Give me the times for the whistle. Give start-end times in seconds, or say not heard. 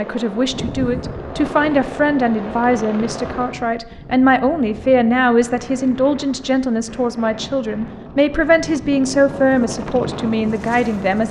not heard.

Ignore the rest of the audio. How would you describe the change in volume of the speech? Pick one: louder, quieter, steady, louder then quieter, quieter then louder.
steady.